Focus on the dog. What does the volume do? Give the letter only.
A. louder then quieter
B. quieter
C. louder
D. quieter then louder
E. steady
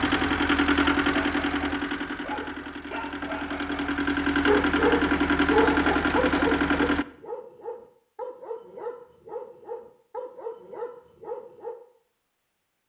A.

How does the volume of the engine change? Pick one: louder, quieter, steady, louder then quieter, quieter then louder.
quieter then louder.